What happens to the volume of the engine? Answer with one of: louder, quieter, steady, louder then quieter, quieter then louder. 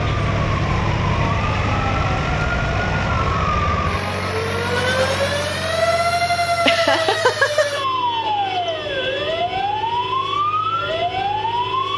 quieter.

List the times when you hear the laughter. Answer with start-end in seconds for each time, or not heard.
6.7-7.8.